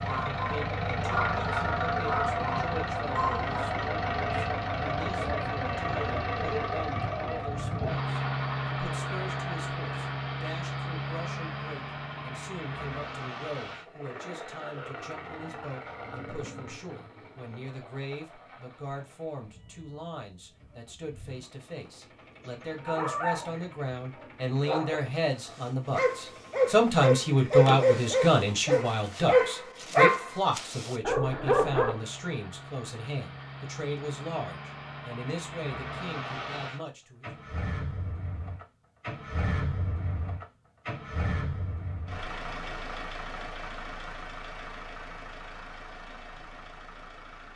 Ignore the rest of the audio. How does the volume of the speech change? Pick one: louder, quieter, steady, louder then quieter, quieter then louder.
louder then quieter.